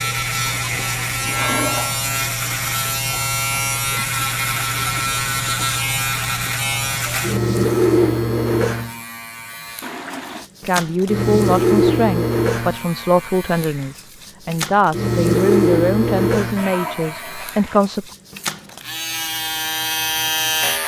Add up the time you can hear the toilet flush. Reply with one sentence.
You can hear the toilet flush for 3 seconds altogether.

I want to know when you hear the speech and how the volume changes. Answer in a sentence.
You can hear the speech from 10.6 to 18.1 s, at a steady volume.